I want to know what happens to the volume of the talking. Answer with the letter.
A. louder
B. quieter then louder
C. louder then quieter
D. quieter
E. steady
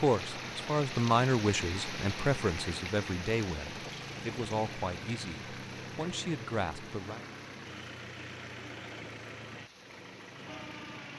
D.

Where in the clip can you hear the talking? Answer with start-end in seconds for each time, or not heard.
0.0-7.2.